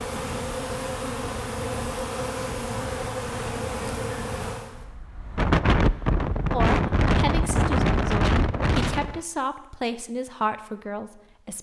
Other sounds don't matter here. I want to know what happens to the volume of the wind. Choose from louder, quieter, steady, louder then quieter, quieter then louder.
louder.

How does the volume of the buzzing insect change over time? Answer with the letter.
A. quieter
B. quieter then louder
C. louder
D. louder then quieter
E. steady
E.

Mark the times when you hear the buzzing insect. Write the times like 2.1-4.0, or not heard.
0.0-4.8.